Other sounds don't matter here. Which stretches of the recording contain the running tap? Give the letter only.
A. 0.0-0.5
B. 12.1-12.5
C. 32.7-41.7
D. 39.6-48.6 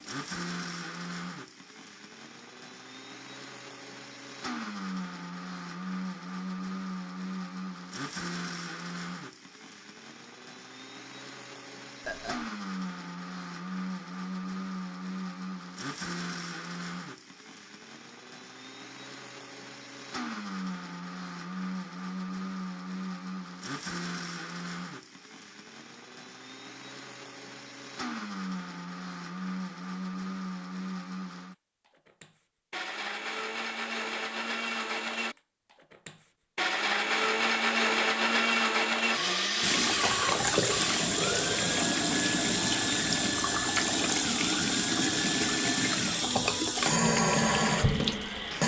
D.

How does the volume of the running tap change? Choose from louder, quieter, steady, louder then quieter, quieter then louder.
steady.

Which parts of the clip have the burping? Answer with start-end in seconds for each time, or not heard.
12.1-12.5.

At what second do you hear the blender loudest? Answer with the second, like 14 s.
38 s.